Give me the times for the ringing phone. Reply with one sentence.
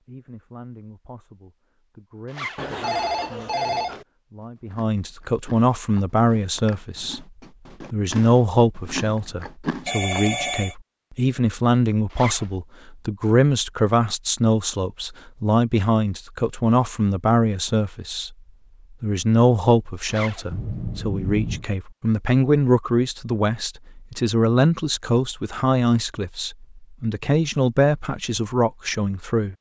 The ringing phone can be heard from 2.5 to 4.0 s, from 9.8 to 10.8 s and from 20.5 to 21.6 s.